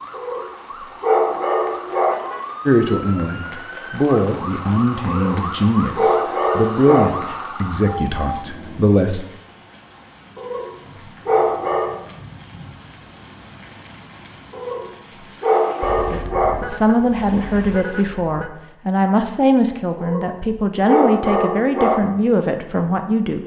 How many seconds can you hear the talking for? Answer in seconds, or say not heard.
14 s.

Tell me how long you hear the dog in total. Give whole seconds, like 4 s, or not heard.
10 s.